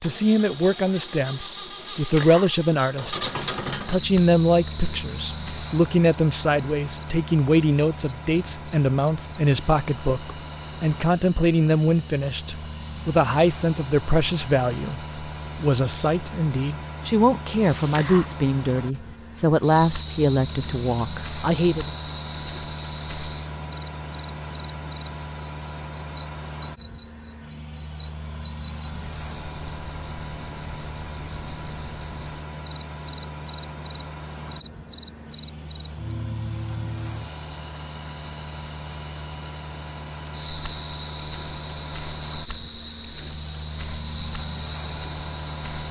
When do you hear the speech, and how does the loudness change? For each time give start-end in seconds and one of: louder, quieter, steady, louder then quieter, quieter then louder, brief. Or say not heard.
0.0-21.9 steady.